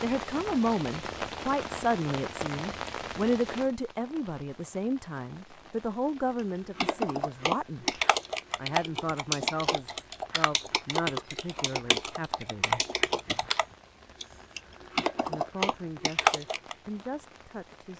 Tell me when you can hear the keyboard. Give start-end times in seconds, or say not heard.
6.8-16.8.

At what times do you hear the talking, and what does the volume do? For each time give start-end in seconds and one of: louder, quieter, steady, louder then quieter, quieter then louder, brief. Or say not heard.
0.0-12.8 quieter
15.2-17.9 brief.